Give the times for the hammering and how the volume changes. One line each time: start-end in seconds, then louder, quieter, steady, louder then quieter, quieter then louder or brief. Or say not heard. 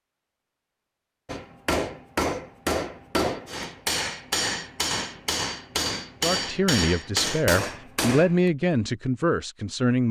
1.2-8.4 steady.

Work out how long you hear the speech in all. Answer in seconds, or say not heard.
4 s.